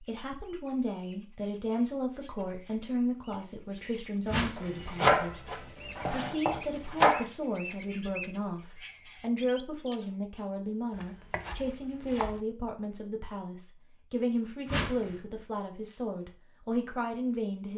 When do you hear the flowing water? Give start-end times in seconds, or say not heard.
not heard.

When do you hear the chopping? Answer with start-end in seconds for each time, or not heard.
4.5-7.2, 11.0-12.3.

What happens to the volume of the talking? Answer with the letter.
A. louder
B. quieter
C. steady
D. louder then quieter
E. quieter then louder
C.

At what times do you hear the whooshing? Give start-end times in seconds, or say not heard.
4.2-4.8, 14.7-15.2.